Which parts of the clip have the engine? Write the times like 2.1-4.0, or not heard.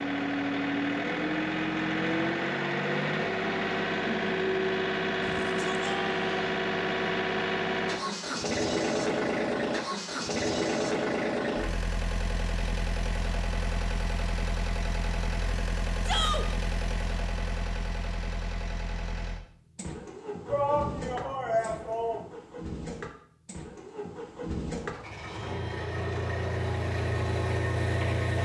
0.0-28.4.